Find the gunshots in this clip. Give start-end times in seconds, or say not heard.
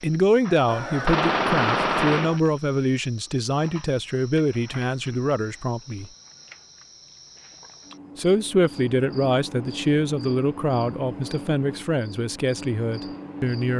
0.7-2.4.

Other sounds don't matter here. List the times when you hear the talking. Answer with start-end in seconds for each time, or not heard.
0.0-6.1, 8.2-13.7.